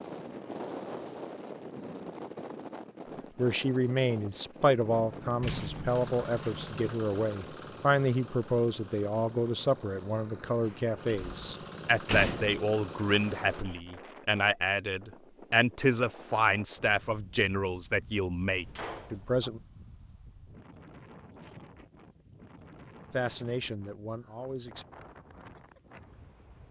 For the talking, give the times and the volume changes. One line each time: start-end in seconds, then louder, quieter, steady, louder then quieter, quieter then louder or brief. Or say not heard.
3.4-19.6 steady
23.1-24.9 brief.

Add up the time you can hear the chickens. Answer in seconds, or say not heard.
not heard.